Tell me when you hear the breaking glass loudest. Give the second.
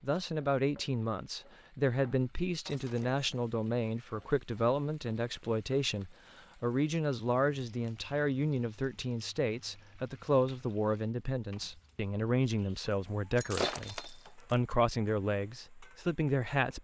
14 s.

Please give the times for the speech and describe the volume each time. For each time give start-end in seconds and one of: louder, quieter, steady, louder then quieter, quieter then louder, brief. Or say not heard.
0.0-16.7 steady.